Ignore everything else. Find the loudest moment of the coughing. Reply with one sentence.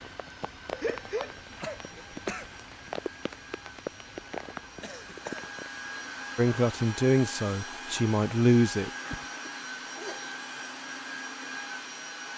The loudest moment of the coughing is at 1 second.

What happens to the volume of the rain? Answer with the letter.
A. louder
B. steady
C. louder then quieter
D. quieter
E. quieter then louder
B.